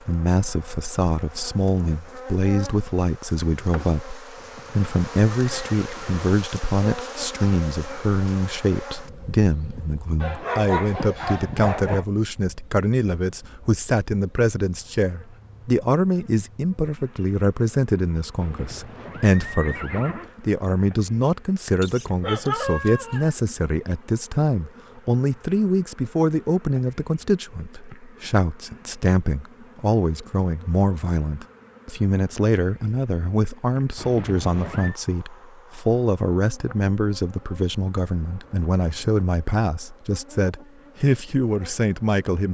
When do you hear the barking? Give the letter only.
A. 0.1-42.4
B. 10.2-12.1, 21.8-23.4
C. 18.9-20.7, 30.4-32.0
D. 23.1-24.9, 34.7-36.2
B.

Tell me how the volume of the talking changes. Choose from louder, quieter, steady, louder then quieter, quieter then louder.
steady.